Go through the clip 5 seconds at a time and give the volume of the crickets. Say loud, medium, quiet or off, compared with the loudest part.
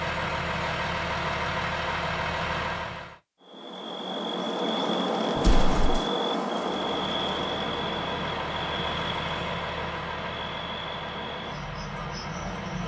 loud, loud, medium.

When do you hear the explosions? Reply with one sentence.
You can hear the explosions from 5.3 to 6.1 s.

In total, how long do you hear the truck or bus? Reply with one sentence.
You can hear the truck or bus for 9 seconds altogether.